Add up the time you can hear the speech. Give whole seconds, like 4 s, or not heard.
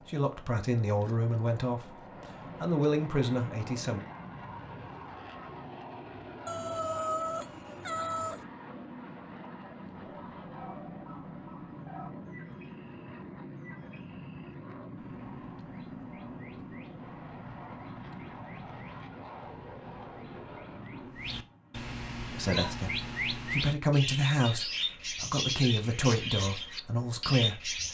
9 s.